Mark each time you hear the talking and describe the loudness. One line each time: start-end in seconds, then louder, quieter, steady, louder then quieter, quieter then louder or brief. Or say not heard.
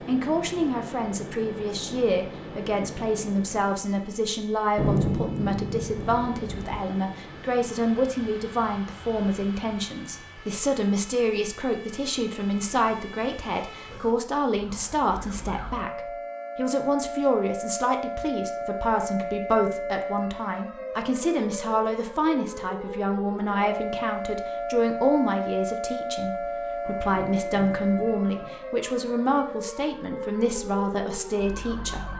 0.1-32.1 steady.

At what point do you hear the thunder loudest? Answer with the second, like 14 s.
5 s.